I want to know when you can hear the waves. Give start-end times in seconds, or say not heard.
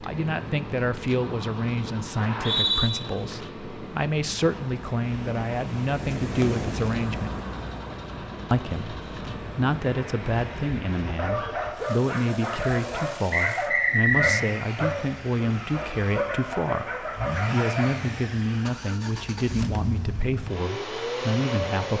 0.0-11.2.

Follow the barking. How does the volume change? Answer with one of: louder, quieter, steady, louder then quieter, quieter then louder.
steady.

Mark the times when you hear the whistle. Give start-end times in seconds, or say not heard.
2.1-2.9, 13.3-14.4.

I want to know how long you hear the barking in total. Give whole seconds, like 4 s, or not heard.
7 s.